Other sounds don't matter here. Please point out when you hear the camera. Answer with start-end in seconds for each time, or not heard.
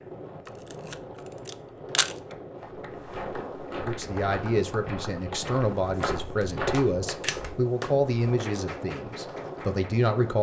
0.5-2.1, 7.2-8.0.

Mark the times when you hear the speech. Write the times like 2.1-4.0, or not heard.
3.7-10.3.